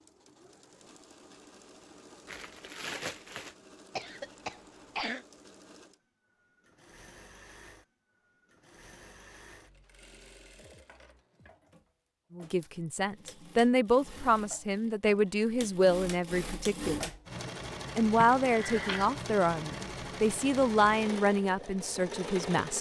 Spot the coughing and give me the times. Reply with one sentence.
You can hear the coughing from 4.0 to 5.2 s and from 18.1 to 19.1 s.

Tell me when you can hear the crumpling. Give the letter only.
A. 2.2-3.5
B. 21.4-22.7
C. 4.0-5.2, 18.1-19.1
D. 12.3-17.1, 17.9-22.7
A.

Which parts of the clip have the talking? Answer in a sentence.
The talking can be heard from 12.3 to 17.1 s and from 17.9 to 22.7 s.